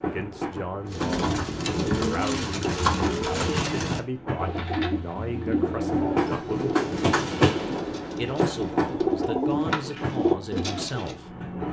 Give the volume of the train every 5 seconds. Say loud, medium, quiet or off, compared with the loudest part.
medium, loud, medium.